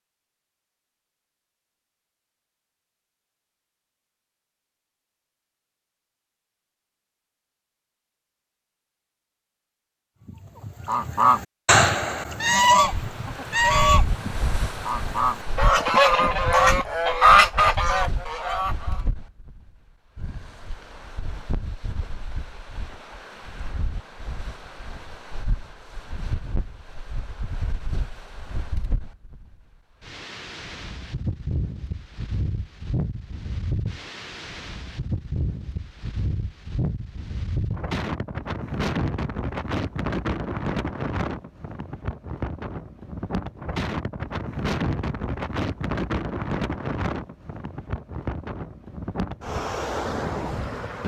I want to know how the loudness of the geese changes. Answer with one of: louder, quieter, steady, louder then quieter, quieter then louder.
quieter then louder.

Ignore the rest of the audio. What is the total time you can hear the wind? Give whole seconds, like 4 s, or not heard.
38 s.